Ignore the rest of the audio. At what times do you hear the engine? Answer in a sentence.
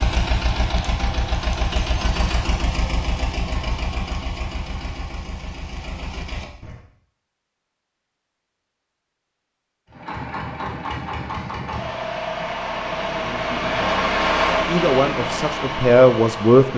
The engine can be heard from 0.0 to 6.8 s and from 9.8 to 16.7 s.